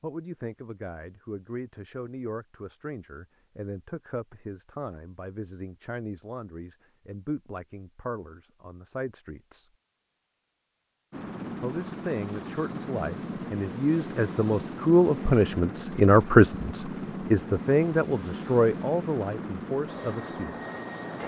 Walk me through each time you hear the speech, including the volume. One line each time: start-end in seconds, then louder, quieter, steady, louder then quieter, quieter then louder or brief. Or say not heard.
0.0-9.7 steady
11.6-20.6 louder then quieter.